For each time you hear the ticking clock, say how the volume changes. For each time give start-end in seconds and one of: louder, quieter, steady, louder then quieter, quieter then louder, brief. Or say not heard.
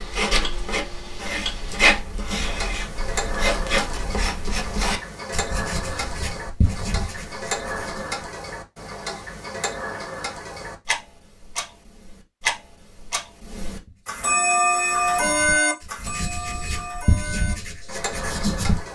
0.0-18.9 louder.